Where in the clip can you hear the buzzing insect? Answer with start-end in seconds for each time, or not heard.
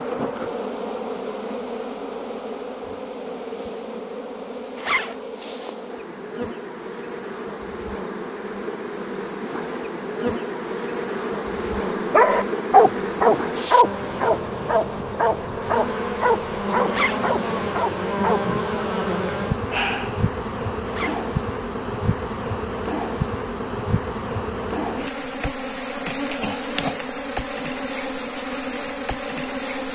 0.0-29.9.